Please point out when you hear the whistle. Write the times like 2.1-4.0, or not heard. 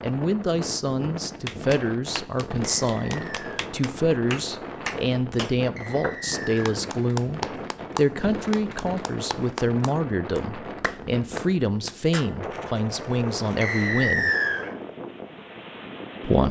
2.9-3.6, 5.8-6.8, 13.6-14.7.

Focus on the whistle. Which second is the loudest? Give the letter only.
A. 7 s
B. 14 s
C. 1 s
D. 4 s
B.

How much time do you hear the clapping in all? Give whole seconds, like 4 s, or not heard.
11 s.